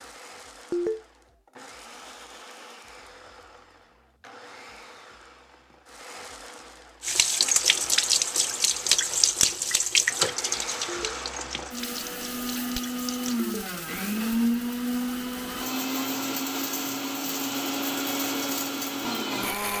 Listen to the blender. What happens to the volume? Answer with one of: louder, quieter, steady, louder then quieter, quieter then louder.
louder.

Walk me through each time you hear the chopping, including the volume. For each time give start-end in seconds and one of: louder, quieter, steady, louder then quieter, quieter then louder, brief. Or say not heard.
not heard.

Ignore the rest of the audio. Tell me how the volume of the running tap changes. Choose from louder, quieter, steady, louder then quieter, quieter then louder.
quieter.